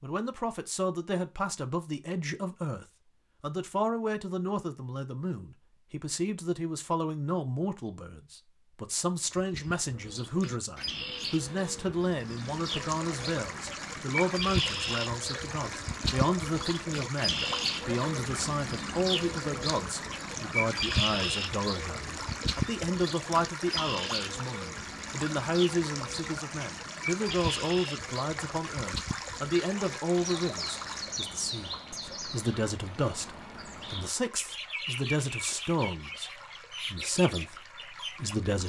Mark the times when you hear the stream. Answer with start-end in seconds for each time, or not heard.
12.2-38.6.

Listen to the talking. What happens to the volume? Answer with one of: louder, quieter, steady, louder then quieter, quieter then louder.
steady.